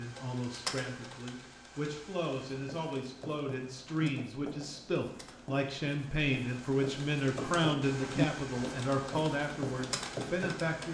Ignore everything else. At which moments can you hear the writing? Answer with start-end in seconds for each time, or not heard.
2.5-10.8.